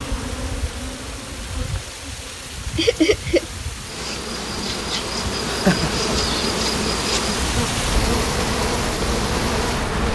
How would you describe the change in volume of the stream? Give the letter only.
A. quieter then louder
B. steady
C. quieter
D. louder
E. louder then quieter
D.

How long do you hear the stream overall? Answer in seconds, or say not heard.
10 s.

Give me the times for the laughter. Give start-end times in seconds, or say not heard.
2.8-3.5, 5.5-6.1.